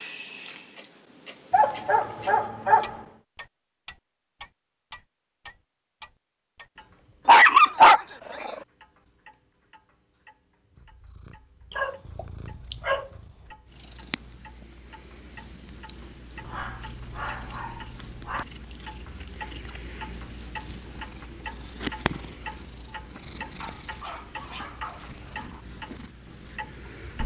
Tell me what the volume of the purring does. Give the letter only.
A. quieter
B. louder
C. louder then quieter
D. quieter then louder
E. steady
C.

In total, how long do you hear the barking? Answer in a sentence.
The barking can be heard for 8 seconds in total.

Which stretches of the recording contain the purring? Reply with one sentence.
You can hear the purring from 10.8 to 27.2 s.